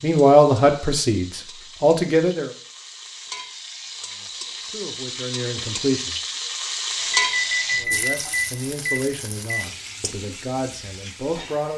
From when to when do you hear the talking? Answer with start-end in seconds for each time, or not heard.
0.0-2.5, 4.0-6.2, 7.8-11.7.